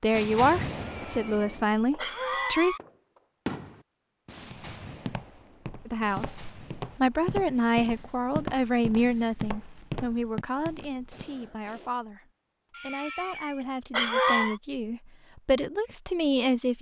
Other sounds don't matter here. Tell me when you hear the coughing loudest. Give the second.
14 s.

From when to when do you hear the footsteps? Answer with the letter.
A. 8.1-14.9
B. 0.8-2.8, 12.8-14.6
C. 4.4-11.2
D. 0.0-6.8
C.